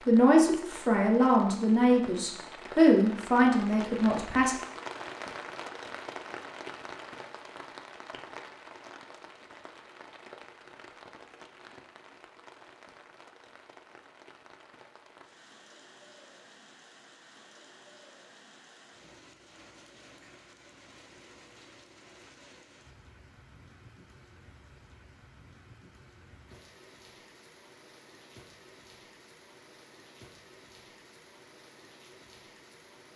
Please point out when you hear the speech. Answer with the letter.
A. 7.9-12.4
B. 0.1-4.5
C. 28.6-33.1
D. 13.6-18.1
B.